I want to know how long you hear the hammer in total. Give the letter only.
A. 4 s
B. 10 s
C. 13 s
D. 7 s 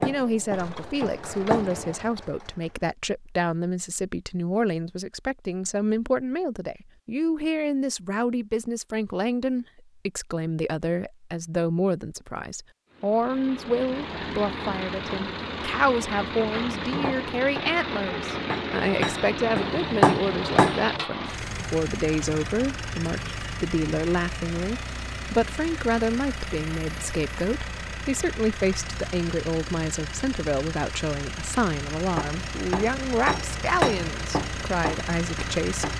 B.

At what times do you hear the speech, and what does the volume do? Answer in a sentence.
You can hear the speech from 0.0 to 35.9 s, at a steady volume.